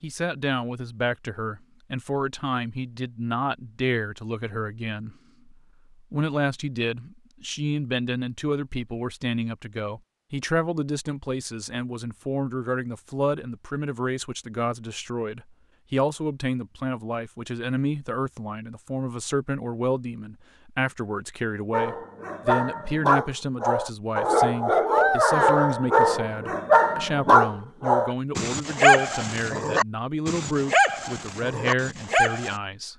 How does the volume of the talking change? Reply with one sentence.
The loudness of the talking stays about the same.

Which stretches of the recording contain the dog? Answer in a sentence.
The dog can be heard from 21.7 to 32.5 s.